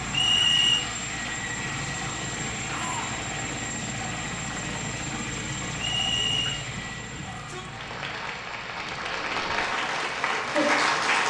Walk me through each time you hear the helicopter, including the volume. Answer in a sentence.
You can hear the helicopter from 0.0 to 11.2 s, getting quieter.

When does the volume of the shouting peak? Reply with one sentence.
The volume of the shouting peaks at 3 seconds.